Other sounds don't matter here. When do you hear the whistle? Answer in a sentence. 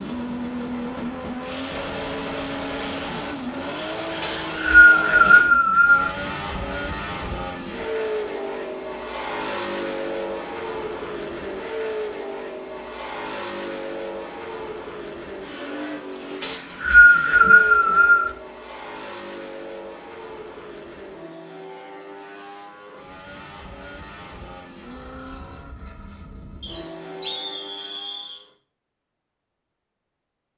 The whistle can be heard from 4.2 to 6.1 s, from 16.4 to 18.3 s and from 26.6 to 28.4 s.